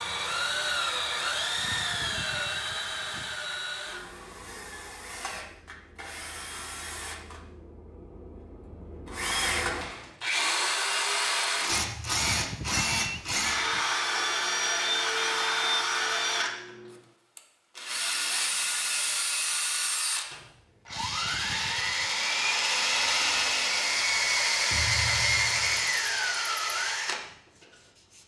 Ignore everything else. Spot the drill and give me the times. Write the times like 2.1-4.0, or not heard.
0.0-28.2.